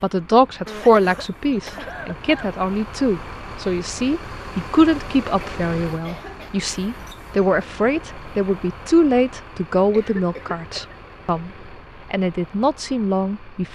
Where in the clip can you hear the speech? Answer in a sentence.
You can hear the speech from 0.0 to 11.5 s and from 12.1 to 13.7 s.